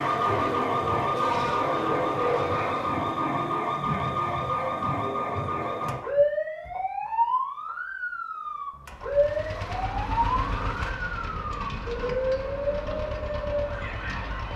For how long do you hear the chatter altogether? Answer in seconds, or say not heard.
not heard.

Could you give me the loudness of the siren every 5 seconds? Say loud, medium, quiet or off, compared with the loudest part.
loud, loud, medium.